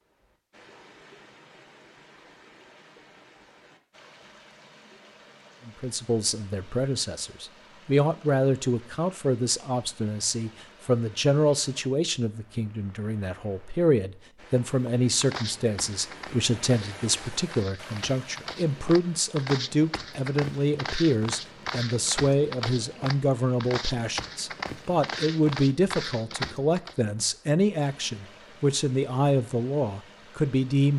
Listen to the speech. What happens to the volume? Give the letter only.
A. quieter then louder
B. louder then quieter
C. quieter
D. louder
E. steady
E.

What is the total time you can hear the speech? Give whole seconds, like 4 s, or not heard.
25 s.